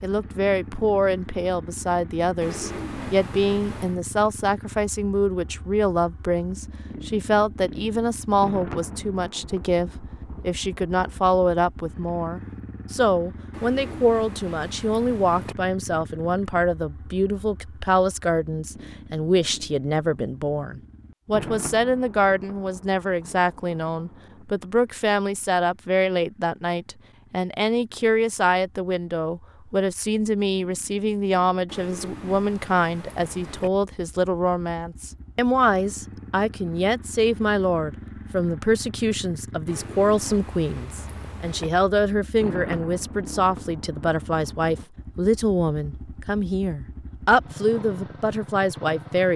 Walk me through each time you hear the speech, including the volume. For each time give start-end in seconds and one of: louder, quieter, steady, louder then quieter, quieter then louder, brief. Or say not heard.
0.0-49.3 steady.